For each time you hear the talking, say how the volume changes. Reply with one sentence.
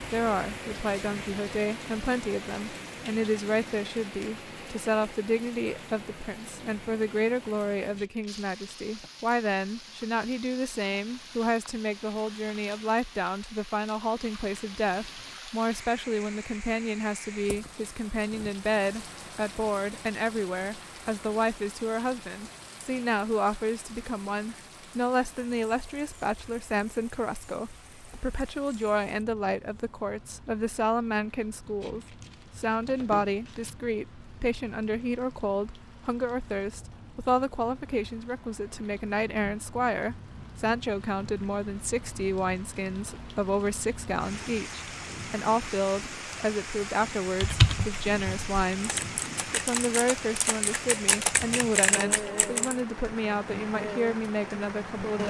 You can hear the talking from 0.0 to 55.2 s, at a steady volume.